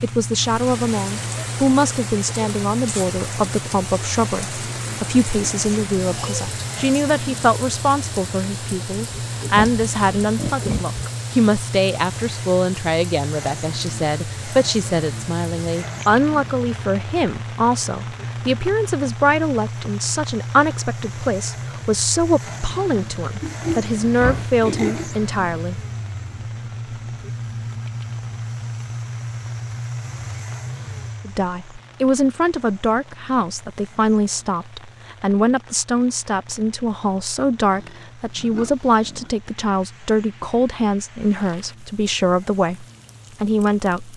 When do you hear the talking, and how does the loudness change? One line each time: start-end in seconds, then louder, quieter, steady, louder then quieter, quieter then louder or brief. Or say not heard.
0.0-25.8 steady
31.2-44.1 steady.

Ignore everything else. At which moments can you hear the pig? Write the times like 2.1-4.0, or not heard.
9.3-11.0, 23.4-25.1, 37.7-39.3.